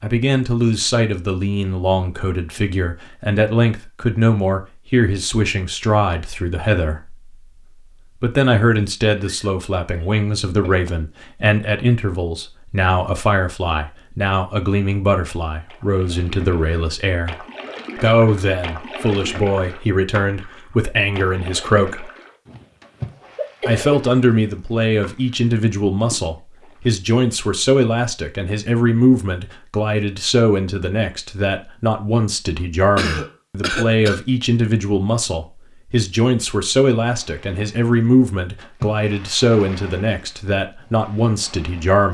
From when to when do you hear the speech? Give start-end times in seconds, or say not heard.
0.0-7.2, 8.2-22.1, 23.6-42.0.